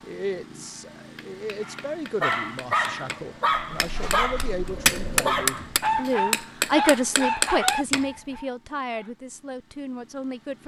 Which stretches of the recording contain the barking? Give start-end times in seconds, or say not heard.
1.6-9.2.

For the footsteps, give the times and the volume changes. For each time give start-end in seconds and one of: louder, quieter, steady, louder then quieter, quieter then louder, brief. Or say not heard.
not heard.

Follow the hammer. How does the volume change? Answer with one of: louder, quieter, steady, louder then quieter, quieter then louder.
louder.